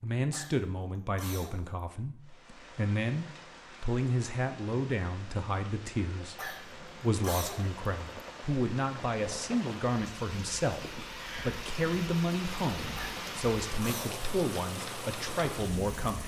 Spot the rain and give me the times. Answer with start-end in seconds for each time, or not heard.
2.2-16.2.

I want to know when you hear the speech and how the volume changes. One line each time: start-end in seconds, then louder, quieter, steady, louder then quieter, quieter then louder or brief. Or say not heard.
0.0-16.2 steady.